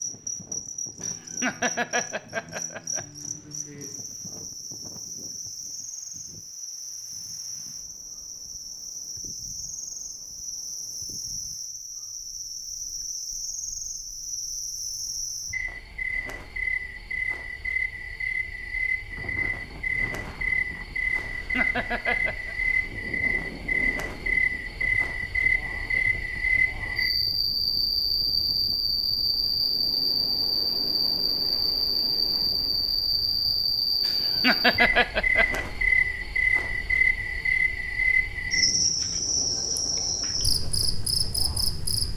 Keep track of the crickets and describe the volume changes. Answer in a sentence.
The loudness of the crickets goes up.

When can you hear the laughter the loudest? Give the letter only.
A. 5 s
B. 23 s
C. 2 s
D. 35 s
D.